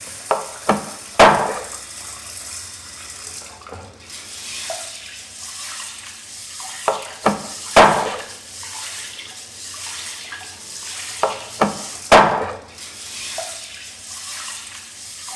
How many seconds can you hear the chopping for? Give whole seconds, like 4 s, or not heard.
4 s.